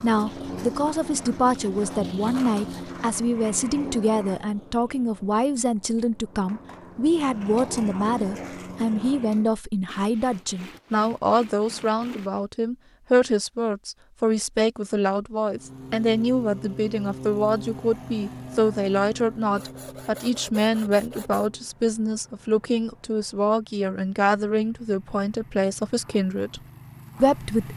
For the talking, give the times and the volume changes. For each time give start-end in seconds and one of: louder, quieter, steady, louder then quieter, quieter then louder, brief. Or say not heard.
0.0-26.6 steady
27.2-27.7 brief.